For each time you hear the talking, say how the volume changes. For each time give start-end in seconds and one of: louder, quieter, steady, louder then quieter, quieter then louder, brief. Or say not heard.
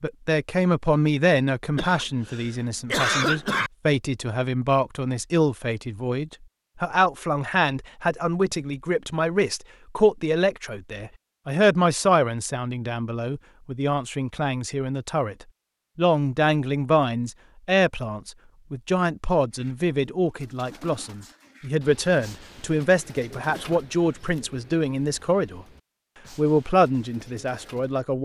0.0-25.6 steady
26.4-28.1 brief.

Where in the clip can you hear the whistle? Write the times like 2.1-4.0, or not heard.
not heard.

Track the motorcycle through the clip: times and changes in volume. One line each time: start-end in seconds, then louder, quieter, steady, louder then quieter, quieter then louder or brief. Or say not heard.
not heard.